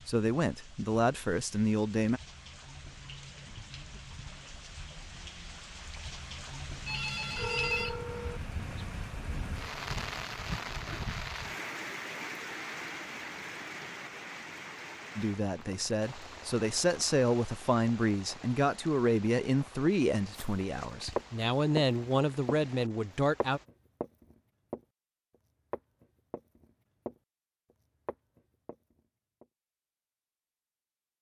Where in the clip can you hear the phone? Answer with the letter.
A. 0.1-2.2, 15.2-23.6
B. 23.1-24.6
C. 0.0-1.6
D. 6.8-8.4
D.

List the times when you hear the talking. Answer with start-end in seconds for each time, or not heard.
0.1-2.2, 15.2-23.6.